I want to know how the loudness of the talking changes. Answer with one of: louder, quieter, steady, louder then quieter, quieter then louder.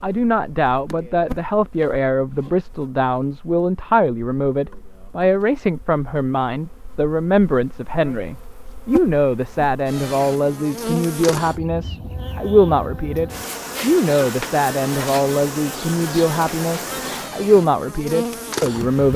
steady.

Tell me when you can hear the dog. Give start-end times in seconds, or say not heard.
not heard.